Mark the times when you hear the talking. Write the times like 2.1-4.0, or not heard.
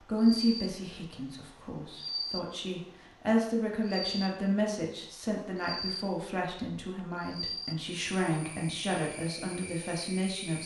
0.0-10.6.